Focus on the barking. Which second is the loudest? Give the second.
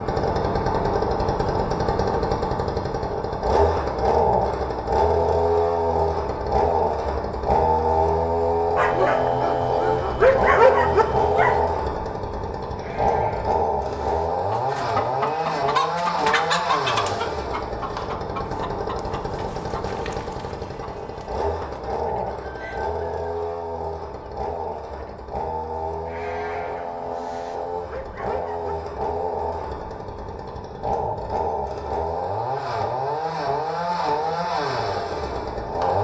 11 s.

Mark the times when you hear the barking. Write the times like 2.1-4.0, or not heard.
8.8-11.6, 26.4-28.8.